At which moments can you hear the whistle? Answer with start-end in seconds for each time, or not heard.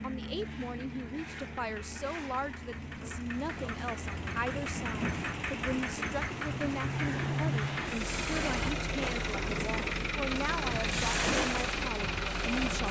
not heard.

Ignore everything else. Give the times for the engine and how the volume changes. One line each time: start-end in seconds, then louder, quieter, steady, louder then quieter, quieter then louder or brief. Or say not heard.
0.0-12.8 louder.